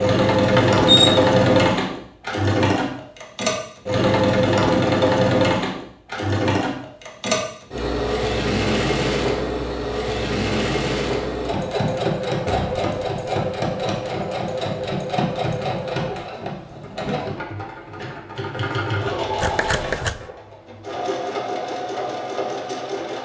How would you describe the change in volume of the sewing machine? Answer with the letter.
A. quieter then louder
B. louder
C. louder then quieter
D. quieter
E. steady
D.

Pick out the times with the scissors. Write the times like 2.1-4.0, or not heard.
19.4-20.2.